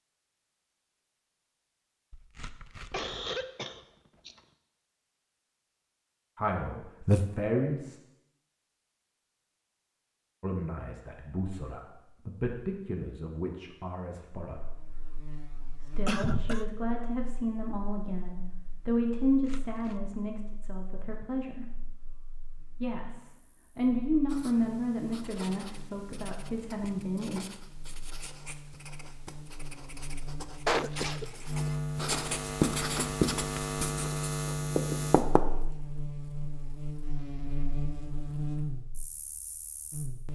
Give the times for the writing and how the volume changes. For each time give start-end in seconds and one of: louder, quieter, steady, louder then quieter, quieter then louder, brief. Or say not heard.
24.2-35.4 louder.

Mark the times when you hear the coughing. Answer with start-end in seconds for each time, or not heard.
2.9-4.4, 16.1-16.6, 30.6-31.2.